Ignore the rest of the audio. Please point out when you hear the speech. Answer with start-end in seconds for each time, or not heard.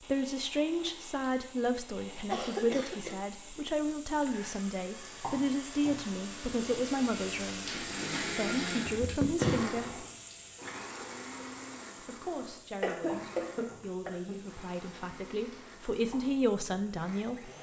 0.1-10.1, 12.0-17.5.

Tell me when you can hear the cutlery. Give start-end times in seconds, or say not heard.
not heard.